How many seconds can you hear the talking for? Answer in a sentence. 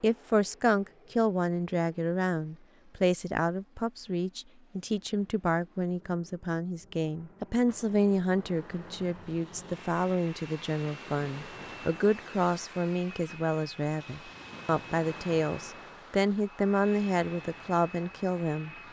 You can hear the talking for 19 seconds altogether.